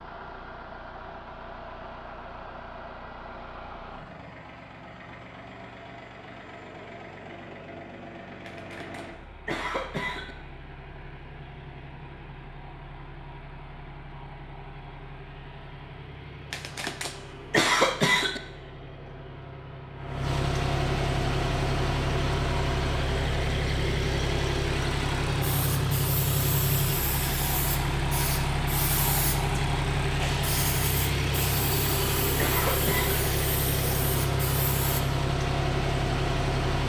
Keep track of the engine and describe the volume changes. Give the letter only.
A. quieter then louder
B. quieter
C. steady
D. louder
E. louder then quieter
D.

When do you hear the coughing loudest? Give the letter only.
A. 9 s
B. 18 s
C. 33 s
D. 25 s
B.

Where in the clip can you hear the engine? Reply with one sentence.
The engine can be heard from 0.0 to 36.8 s.